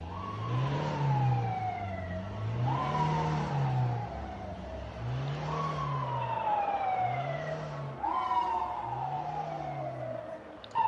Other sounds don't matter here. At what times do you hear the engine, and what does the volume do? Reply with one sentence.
The engine can be heard from 0.0 to 10.8 s, getting quieter.